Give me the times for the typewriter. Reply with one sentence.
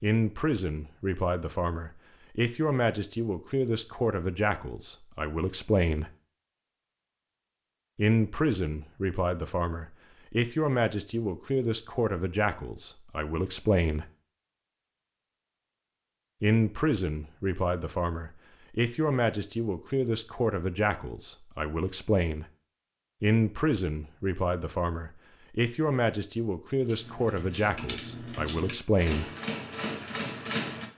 The typewriter can be heard from 26.8 to 30.9 s.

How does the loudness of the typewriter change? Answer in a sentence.
The loudness of the typewriter goes up.